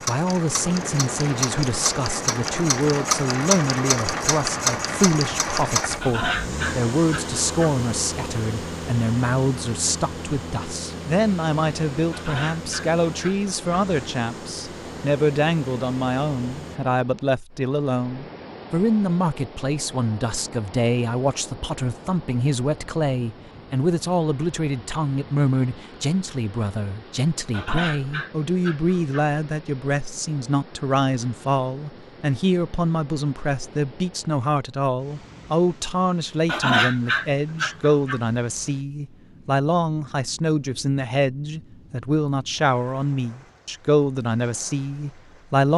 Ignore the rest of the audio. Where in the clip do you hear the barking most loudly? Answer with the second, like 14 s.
37 s.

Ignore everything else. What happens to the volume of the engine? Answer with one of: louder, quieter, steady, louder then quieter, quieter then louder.
quieter.